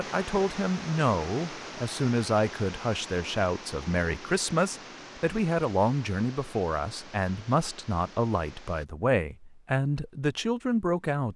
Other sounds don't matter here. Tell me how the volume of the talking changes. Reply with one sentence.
The volume of the talking stays about the same.